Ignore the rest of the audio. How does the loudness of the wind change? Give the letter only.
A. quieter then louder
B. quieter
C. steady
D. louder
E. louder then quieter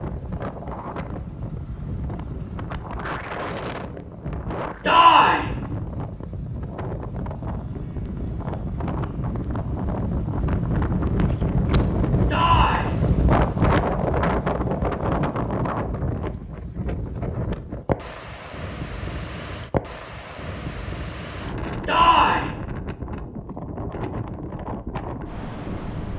E.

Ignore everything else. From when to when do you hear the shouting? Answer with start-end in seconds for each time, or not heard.
4.8-5.5, 12.3-12.9, 21.9-22.5.